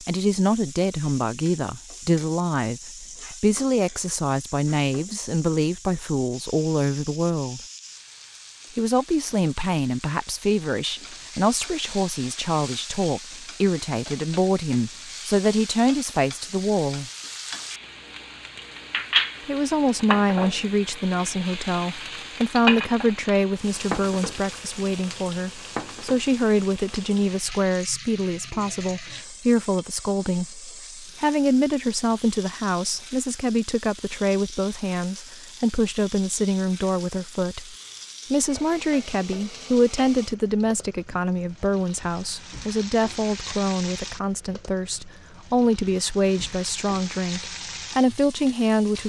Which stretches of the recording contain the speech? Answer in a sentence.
The speech can be heard from 0.0 to 7.6 s, from 8.8 to 17.1 s and from 19.4 to 49.0 s.